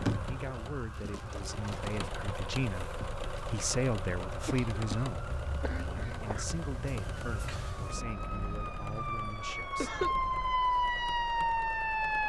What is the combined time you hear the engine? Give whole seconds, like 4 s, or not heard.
12 s.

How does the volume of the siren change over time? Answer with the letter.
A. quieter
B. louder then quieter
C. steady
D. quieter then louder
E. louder
E.